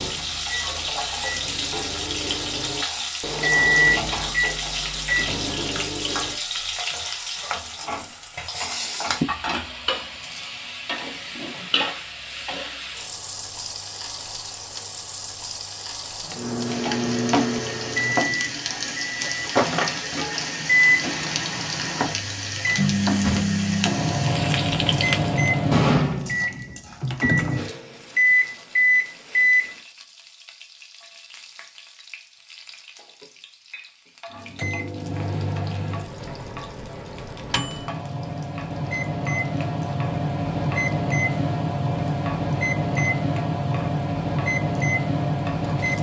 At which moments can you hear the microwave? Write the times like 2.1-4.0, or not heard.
0.0-6.4, 16.2-29.8, 34.4-45.9.